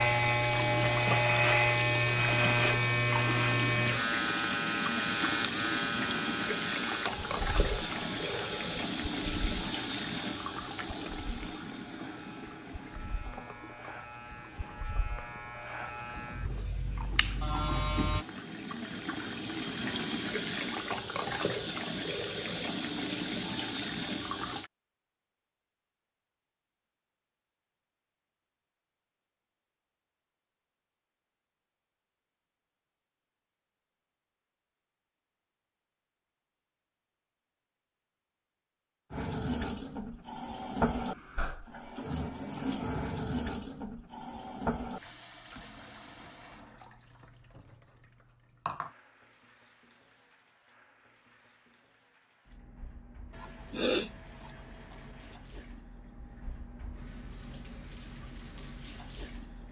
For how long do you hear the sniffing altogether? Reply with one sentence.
You can hear the sniffing for 2 seconds altogether.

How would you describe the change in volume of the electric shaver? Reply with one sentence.
The volume of the electric shaver goes down, then up.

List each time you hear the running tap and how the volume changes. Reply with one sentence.
You can hear the running tap from 0.0 to 24.7 s, getting quieter then louder; and from 39.1 to 59.6 s, getting quieter then louder.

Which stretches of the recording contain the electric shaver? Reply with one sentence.
The electric shaver can be heard from 0.0 to 18.2 s.